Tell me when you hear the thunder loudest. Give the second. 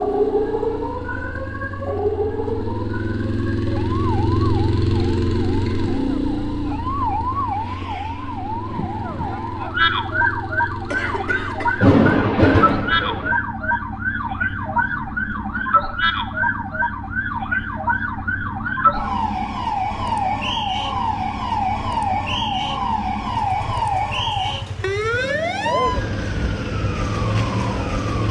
12 s.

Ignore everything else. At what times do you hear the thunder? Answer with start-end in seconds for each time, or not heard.
11.8-13.3.